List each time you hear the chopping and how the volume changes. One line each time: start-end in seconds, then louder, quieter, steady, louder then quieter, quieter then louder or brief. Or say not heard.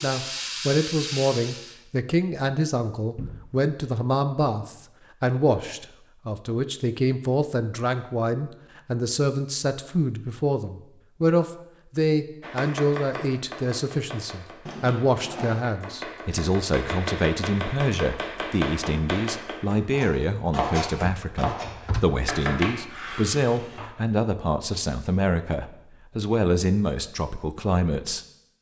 12.4-23.9 louder.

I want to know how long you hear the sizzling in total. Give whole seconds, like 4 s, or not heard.
2 s.